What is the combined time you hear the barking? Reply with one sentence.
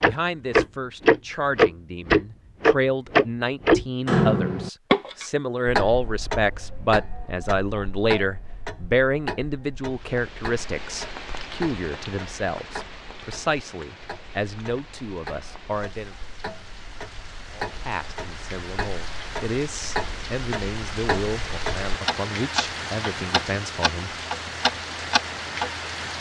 The barking can't be heard in this clip.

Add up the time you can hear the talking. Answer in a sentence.
You can hear the talking for 23 seconds altogether.